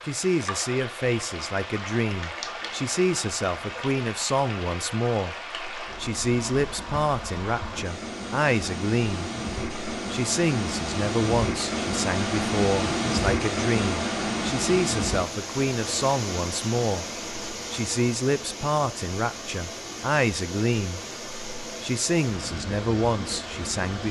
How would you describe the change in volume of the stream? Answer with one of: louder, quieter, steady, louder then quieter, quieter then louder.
louder then quieter.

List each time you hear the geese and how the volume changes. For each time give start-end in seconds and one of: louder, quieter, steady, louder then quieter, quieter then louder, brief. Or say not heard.
not heard.